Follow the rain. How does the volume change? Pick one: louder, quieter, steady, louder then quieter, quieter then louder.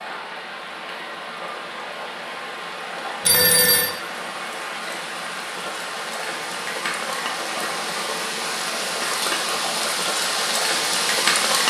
louder.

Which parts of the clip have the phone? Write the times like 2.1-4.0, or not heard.
3.2-3.9.